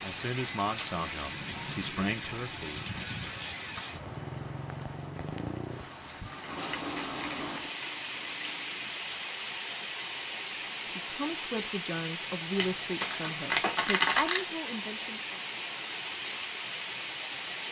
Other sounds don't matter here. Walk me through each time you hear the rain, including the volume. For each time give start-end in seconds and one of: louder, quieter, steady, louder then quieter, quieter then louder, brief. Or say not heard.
0.0-17.6 steady.